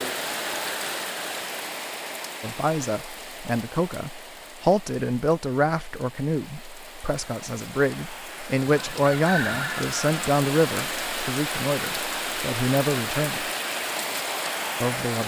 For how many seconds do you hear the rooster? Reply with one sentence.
The rooster can be heard for 2 seconds in total.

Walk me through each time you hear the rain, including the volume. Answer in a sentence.
The rain can be heard from 0.0 to 15.2 s, getting quieter then louder.